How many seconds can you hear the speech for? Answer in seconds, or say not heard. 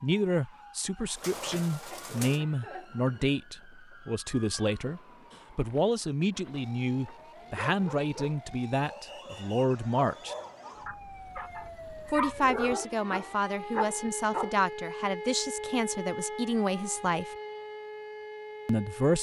16 s.